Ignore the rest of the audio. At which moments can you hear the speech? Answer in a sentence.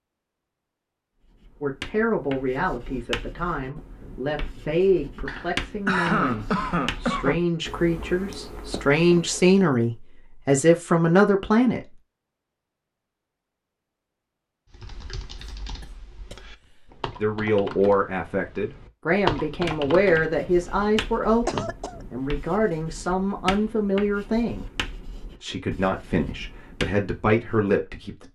You can hear the speech from 1.6 to 11.9 s and from 17.2 to 28.3 s.